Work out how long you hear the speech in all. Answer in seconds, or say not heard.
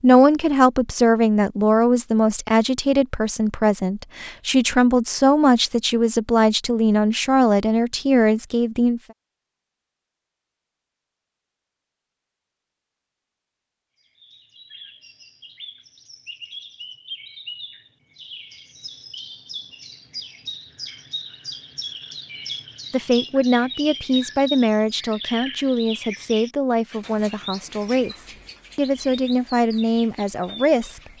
17 s.